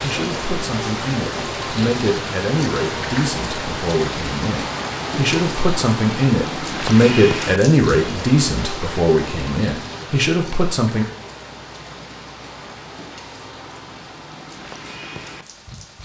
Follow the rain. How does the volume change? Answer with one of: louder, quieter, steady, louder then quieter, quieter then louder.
quieter.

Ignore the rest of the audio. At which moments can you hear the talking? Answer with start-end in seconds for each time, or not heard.
0.0-11.1.